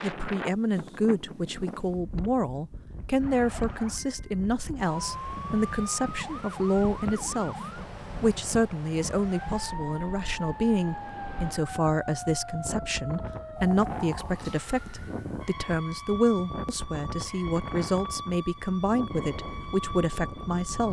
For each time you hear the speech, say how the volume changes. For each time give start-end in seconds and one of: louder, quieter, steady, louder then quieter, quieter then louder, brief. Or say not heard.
0.0-20.8 steady.